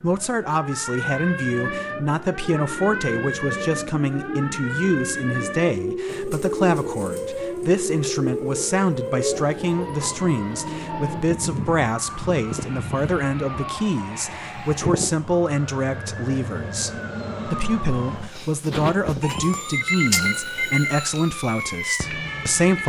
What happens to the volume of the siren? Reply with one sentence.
The loudness of the siren stays about the same.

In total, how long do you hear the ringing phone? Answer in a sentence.
The ringing phone can be heard for 2 seconds in total.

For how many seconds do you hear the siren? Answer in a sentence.
The siren can be heard for 23 seconds in total.